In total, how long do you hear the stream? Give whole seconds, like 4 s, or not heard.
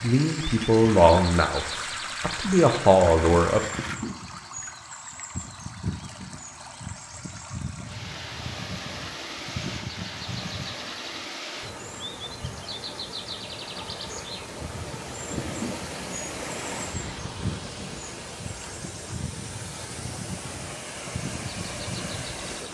23 s.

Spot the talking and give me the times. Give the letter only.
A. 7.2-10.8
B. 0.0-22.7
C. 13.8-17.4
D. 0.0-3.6
D.